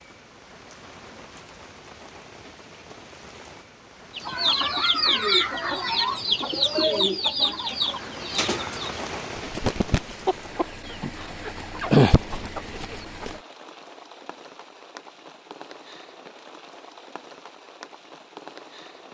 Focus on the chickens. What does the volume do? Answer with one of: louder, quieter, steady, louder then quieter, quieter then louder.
quieter then louder.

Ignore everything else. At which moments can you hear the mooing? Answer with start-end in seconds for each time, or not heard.
not heard.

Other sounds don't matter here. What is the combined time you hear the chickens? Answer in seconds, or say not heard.
9 s.